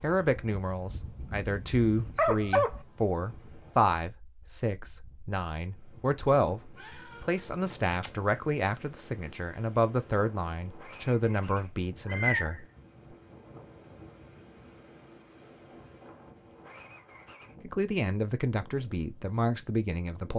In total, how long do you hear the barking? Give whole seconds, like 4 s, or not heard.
2 s.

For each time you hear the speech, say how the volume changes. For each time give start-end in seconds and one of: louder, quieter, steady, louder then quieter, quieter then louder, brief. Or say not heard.
0.0-12.7 steady
17.6-20.3 brief.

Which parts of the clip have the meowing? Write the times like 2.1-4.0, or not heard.
6.8-8.1, 12.1-12.6.